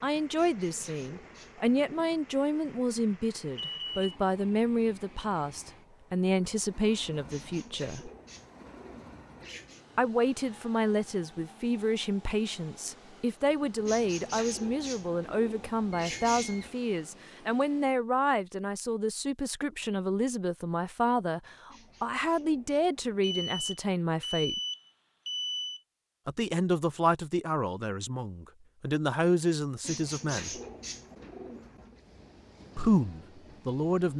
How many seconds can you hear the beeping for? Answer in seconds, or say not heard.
4 s.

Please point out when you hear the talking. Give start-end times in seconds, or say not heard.
0.0-8.1, 9.9-24.6, 26.2-30.5, 32.8-34.1.